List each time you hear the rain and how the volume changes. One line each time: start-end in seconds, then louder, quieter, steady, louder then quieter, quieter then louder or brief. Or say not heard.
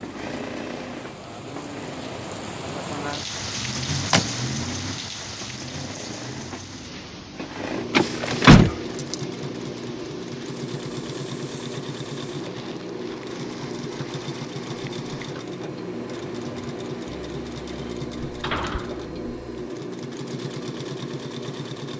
0.0-17.9 quieter.